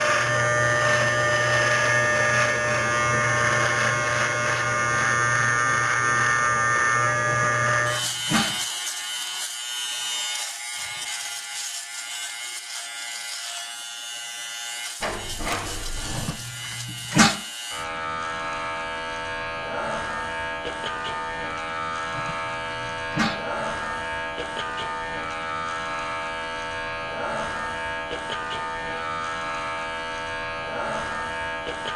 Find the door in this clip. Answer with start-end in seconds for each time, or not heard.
15.0-16.4.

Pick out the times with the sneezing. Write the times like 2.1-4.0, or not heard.
7.2-8.6, 16.1-17.4, 22.1-23.4.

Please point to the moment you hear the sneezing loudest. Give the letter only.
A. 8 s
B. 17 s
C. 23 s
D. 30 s
B.